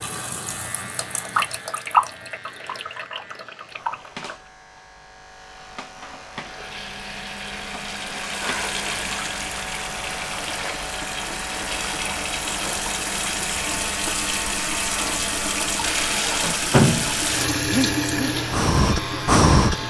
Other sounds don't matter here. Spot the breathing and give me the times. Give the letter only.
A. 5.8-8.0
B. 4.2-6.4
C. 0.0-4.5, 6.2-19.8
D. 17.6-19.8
D.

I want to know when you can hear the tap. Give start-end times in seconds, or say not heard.
0.0-4.5, 6.2-19.8.